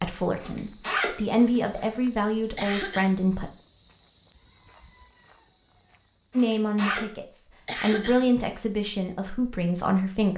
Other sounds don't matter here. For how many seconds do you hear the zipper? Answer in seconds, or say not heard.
2 s.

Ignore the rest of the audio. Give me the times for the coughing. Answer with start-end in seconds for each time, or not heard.
2.5-3.1, 7.7-8.2.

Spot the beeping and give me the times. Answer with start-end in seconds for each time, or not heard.
not heard.